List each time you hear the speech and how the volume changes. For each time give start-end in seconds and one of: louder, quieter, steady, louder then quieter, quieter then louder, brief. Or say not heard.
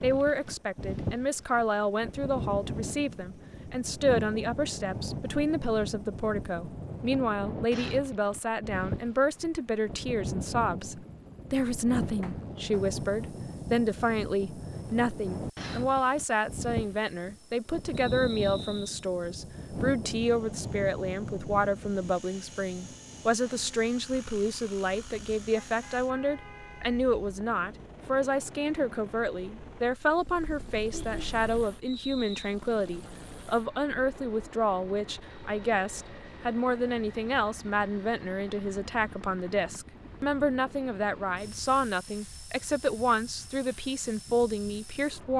0.0-45.3 steady.